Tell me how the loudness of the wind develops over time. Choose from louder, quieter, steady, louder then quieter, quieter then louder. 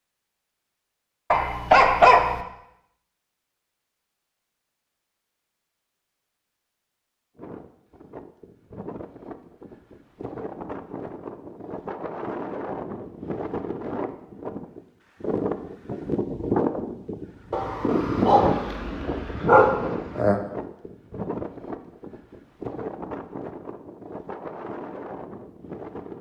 louder then quieter.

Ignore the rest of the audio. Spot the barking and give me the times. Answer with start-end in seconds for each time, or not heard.
1.3-2.4, 17.5-20.4.